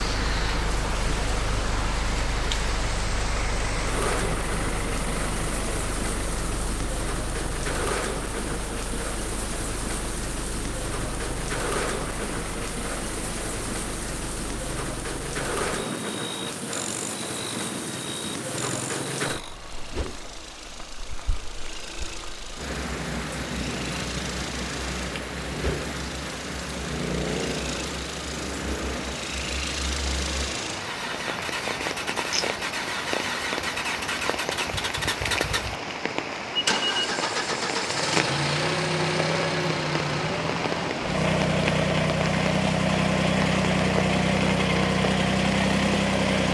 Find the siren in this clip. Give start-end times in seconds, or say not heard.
not heard.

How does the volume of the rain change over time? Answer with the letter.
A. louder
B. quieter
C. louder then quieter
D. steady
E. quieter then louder
D.